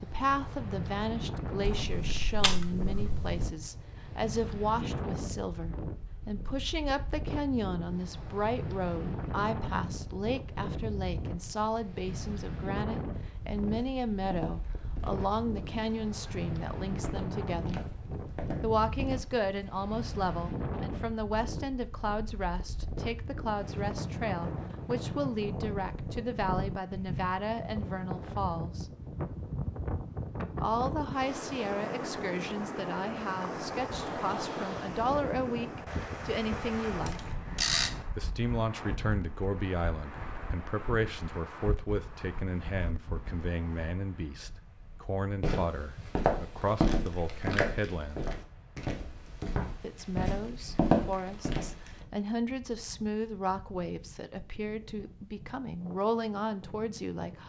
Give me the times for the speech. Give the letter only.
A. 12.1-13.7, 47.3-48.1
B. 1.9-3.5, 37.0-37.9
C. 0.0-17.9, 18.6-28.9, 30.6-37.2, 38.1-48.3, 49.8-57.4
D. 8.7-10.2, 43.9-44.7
C.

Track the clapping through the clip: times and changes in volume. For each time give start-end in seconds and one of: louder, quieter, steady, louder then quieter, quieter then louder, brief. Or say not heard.
not heard.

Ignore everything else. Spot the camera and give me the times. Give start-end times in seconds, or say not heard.
1.9-3.5, 37.0-37.9.